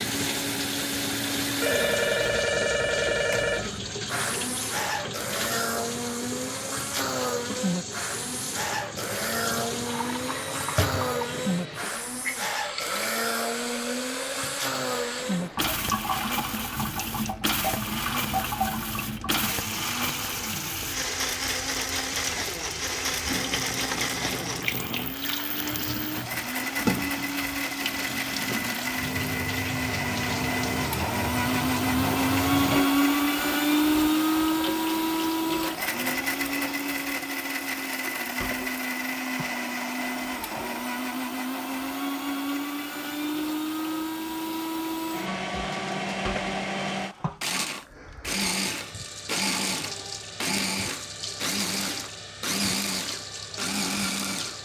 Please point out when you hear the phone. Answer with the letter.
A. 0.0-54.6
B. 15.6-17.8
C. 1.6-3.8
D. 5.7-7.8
C.